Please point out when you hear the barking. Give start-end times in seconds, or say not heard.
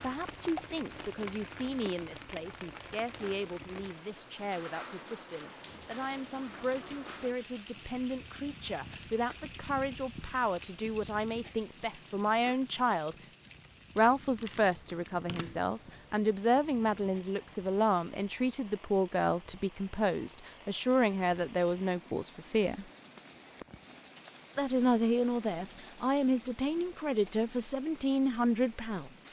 not heard.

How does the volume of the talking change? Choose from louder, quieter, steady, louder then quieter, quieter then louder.
louder.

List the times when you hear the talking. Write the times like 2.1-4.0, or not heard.
0.0-13.2, 13.9-22.9, 24.6-29.2.